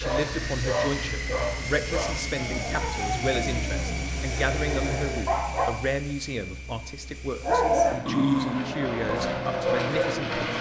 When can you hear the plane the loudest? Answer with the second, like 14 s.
10 s.